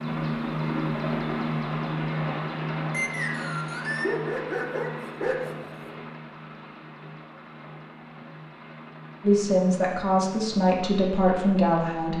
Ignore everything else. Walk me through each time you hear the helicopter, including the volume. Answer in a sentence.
You can hear the helicopter from 0.0 to 12.1 s, getting quieter.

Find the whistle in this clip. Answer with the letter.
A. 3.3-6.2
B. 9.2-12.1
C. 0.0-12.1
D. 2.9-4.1
D.